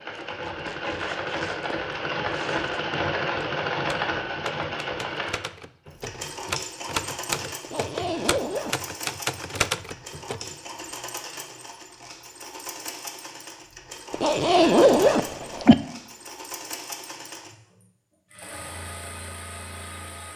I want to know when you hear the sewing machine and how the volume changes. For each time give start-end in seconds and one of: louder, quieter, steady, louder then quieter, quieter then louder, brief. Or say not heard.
0.0-20.3 quieter.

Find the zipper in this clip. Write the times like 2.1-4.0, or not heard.
0.2-2.9, 7.6-8.8, 14.1-15.8.